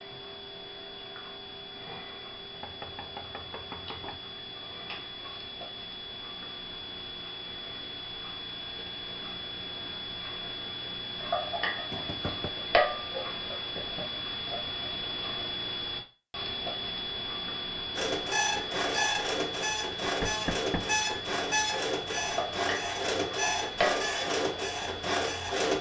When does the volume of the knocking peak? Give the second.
20 s.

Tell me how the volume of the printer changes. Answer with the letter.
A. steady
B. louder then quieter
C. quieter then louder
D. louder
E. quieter
A.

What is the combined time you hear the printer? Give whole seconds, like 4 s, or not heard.
8 s.